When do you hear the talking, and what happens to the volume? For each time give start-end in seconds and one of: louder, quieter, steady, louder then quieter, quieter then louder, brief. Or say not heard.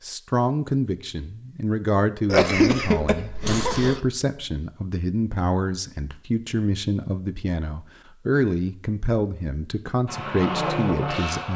0.0-11.5 steady.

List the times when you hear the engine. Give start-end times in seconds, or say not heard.
10.1-11.5.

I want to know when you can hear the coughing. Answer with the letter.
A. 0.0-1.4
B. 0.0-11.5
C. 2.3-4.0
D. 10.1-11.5
C.